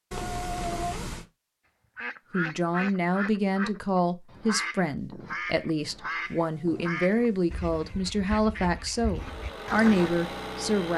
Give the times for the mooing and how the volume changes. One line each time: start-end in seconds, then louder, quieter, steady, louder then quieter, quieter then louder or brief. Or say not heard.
not heard.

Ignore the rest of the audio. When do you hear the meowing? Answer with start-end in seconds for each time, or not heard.
0.1-1.2, 6.2-8.1.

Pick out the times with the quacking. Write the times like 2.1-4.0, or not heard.
1.9-10.1.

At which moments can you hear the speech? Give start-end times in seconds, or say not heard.
2.3-10.9.